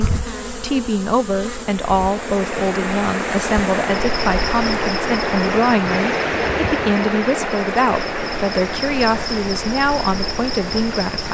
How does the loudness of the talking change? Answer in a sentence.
The loudness of the talking stays about the same.